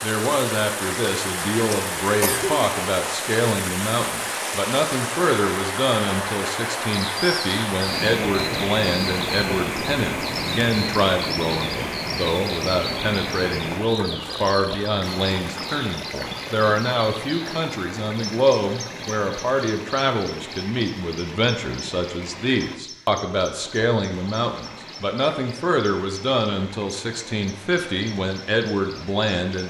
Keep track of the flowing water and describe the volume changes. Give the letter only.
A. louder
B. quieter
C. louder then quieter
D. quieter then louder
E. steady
B.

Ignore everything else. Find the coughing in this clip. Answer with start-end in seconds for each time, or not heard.
1.7-2.7.